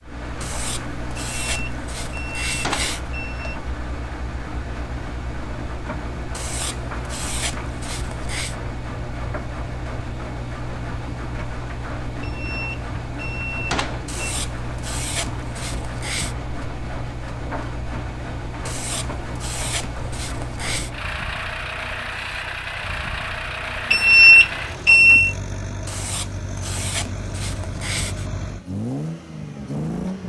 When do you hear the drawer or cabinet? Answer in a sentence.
You can't hear the drawer or cabinet here.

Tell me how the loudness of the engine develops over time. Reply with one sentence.
The loudness of the engine stays about the same.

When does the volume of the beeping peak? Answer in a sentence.
The volume of the beeping peaks at 24 seconds.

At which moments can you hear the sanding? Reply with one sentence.
The sanding can be heard from 0.4 to 3.0 s, from 6.3 to 8.6 s, from 14.1 to 16.4 s, from 18.6 to 20.9 s and from 25.9 to 28.2 s.